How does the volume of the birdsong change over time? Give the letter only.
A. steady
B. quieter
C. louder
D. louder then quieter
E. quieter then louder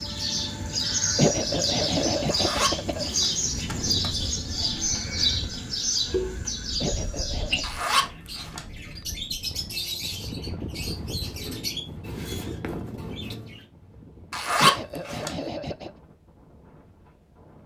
B.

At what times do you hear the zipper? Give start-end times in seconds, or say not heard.
2.3-4.1, 7.6-8.7, 14.3-15.3.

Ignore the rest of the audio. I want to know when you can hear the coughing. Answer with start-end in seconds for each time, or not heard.
1.1-3.1, 6.8-7.7, 14.6-15.9.